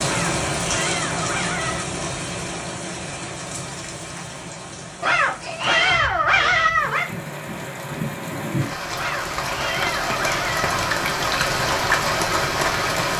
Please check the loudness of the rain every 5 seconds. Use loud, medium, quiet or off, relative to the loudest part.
medium, medium, loud.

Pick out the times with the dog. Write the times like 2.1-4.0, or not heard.
0.1-1.9, 5.0-7.0, 8.9-10.7.